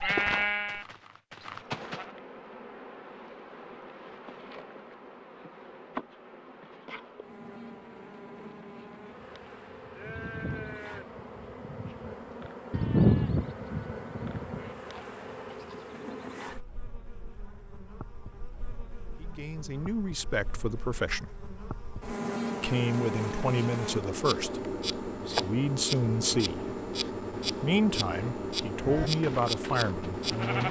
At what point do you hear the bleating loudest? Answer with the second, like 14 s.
13 s.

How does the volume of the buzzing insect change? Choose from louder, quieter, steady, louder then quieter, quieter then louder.
louder.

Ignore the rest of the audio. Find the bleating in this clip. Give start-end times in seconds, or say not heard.
0.0-2.0, 9.8-15.8, 28.8-30.6.